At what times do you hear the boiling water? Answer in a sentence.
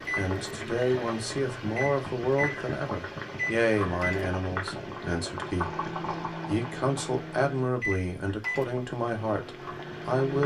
The boiling water can be heard from 0.0 to 10.4 s.